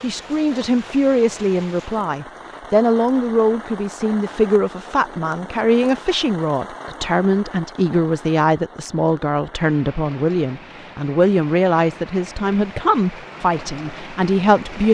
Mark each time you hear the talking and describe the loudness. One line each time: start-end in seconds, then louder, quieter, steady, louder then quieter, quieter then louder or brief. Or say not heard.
0.0-14.8 steady.